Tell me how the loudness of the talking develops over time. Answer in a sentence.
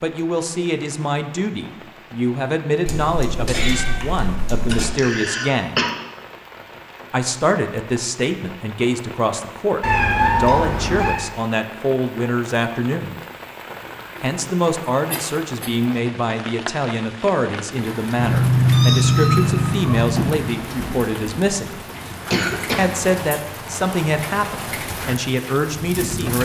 The volume of the talking stays about the same.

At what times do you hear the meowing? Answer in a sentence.
You can hear the meowing from 2.9 to 4.8 s, from 9.8 to 11.2 s and from 18.1 to 20.5 s.